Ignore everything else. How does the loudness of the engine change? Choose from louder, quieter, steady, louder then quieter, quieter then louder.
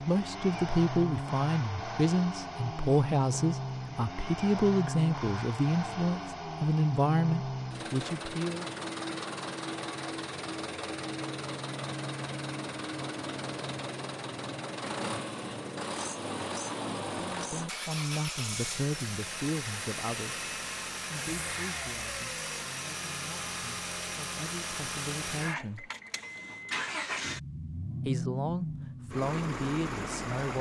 steady.